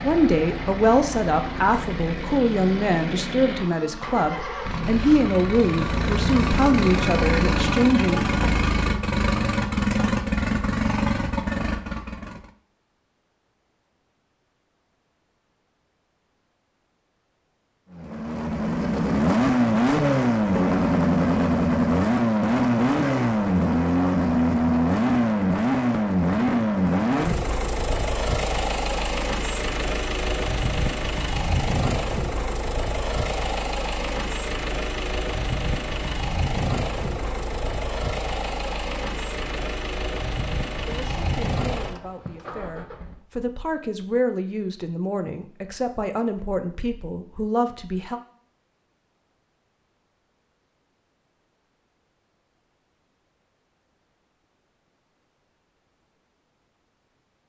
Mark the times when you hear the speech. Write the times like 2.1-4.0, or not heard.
0.0-8.2, 40.9-48.2.